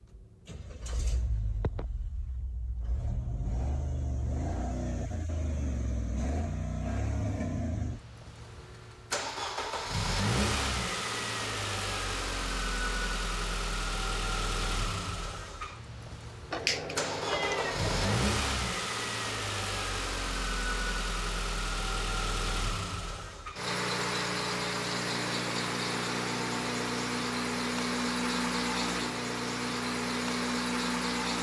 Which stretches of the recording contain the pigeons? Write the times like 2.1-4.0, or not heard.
not heard.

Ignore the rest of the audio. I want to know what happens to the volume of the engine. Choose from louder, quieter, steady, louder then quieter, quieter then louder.
louder.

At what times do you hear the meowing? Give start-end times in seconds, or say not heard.
16.5-18.2.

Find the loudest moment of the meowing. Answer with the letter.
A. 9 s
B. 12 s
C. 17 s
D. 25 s
C.